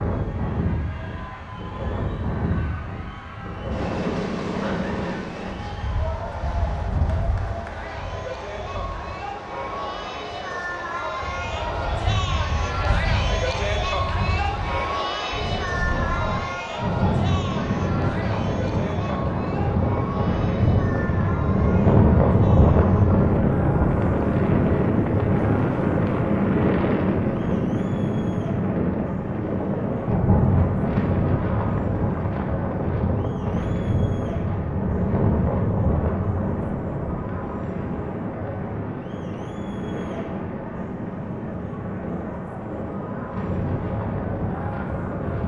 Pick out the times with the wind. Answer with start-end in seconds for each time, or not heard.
0.0-45.4.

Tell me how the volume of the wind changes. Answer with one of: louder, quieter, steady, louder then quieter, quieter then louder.
louder then quieter.